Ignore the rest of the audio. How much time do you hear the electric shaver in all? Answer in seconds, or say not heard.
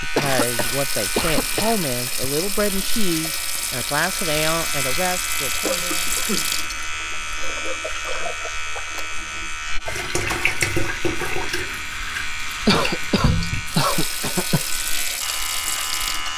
16 s.